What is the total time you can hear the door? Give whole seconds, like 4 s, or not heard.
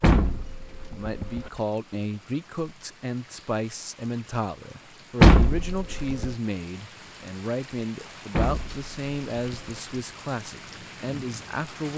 4 s.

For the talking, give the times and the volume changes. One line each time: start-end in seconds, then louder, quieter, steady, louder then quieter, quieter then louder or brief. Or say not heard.
0.1-11.9 steady.